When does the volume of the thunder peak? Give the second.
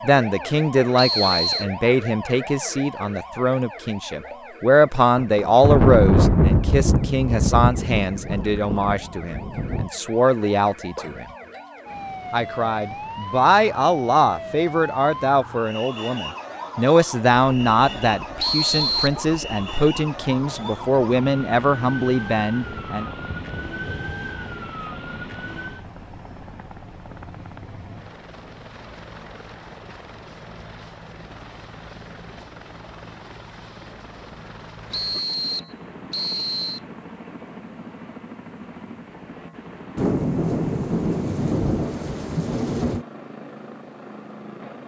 6 s.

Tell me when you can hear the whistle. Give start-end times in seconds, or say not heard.
0.9-1.6, 18.4-19.2, 34.9-36.8.